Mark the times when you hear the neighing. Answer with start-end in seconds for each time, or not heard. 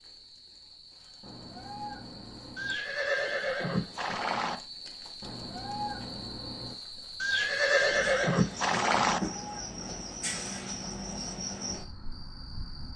2.5-4.6, 7.2-9.2.